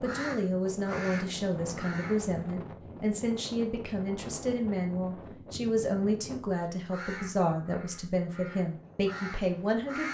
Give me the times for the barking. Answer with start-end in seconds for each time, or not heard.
not heard.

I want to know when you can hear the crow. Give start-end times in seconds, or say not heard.
0.0-2.2, 6.9-10.0.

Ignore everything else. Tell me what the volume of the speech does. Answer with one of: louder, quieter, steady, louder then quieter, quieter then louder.
steady.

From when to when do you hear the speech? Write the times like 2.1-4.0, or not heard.
0.0-10.0.